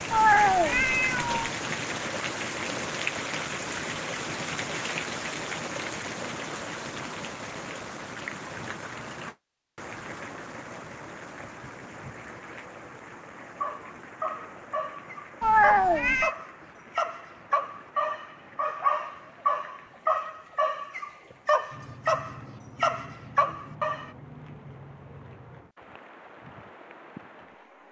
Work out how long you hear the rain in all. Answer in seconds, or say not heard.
28 s.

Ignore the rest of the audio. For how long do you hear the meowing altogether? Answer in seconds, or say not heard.
2 s.